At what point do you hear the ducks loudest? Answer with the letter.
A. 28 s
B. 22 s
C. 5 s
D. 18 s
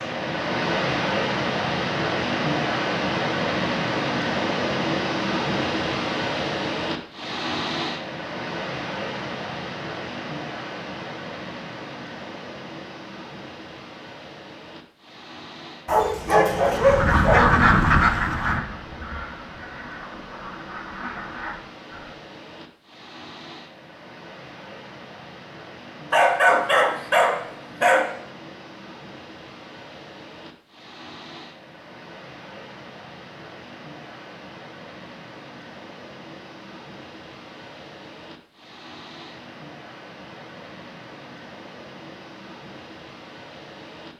D.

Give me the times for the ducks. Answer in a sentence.
The ducks can be heard from 16.8 to 22.1 s.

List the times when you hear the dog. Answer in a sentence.
The dog can be heard from 15.8 to 17.4 s and from 26.1 to 28.1 s.